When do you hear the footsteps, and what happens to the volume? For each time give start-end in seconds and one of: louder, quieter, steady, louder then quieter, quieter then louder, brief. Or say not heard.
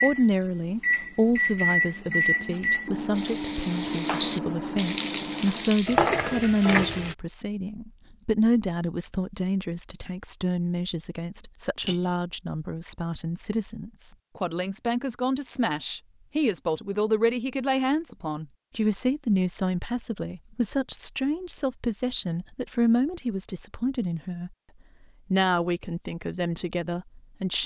not heard.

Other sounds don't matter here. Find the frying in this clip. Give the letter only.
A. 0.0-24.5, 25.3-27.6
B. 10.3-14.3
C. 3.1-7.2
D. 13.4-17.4
C.